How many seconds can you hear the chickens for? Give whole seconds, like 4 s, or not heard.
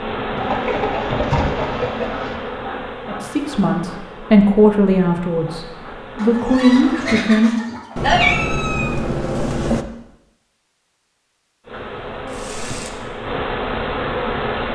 5 s.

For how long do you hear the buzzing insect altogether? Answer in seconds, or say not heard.
10 s.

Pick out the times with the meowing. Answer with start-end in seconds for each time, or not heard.
8.0-9.8.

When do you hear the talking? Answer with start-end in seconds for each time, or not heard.
3.0-7.5.